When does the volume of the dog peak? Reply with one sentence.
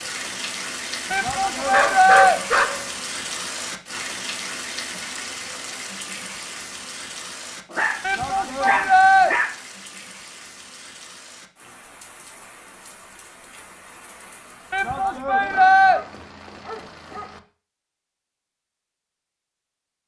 The loudest moment of the dog is at 2 seconds.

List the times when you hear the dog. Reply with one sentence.
You can hear the dog from 1.6 to 2.9 s, from 7.7 to 9.6 s and from 15.4 to 17.4 s.